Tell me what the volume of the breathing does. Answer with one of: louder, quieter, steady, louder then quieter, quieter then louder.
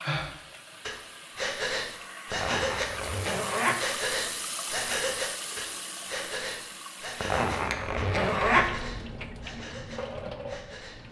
quieter.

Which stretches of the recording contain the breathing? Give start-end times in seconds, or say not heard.
0.0-11.0.